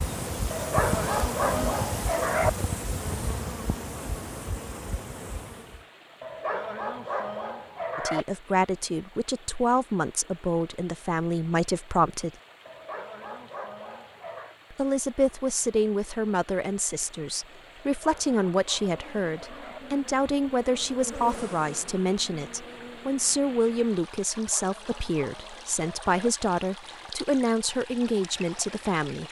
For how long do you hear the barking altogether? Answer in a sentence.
You can hear the barking for 10 seconds altogether.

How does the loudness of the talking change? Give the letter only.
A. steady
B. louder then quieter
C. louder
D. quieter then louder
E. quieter
A.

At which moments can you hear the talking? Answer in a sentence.
You can hear the talking from 8.0 to 12.3 s and from 14.7 to 29.2 s.